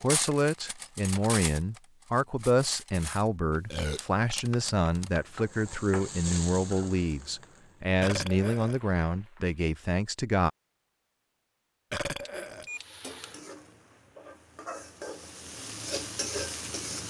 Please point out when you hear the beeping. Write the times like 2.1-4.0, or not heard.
12.2-13.3.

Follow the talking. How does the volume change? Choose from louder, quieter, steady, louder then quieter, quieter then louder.
steady.